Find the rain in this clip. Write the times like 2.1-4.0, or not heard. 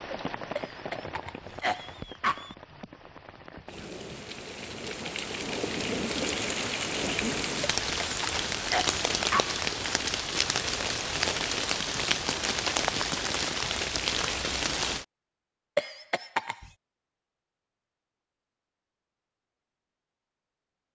0.0-15.1.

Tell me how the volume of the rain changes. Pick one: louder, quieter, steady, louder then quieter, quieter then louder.
louder.